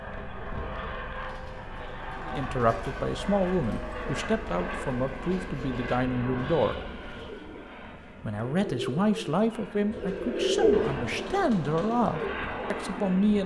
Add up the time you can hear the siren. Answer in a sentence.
The siren can't be heard in this clip.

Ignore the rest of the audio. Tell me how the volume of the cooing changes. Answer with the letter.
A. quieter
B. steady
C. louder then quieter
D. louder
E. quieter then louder
D.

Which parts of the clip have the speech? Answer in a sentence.
You can hear the speech from 2.2 to 6.8 s and from 8.2 to 13.4 s.